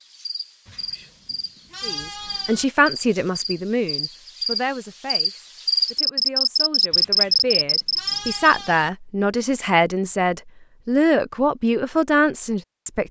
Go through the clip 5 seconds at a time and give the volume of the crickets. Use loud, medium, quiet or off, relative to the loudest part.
quiet, loud, off.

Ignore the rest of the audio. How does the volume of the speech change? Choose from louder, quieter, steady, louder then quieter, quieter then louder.
quieter then louder.